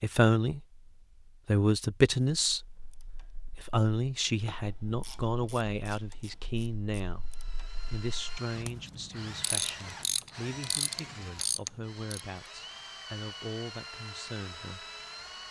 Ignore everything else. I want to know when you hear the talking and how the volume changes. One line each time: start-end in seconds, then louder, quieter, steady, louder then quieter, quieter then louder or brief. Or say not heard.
0.0-0.8 brief
1.4-14.8 quieter.